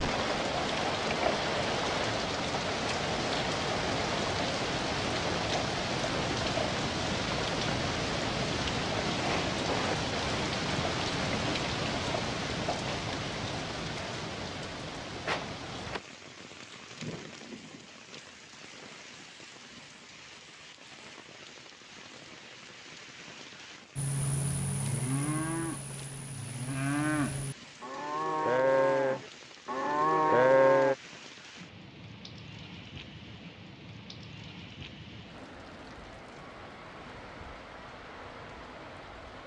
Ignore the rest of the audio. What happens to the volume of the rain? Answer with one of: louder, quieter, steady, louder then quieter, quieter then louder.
quieter.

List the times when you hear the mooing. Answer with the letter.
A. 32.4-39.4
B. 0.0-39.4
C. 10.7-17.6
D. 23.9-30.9
D.